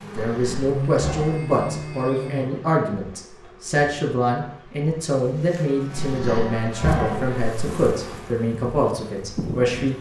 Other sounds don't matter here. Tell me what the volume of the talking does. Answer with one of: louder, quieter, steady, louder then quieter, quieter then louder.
steady.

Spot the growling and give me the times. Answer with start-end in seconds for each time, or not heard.
0.1-1.4, 6.0-8.0.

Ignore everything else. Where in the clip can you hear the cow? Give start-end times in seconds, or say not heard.
0.7-2.5, 5.5-7.2.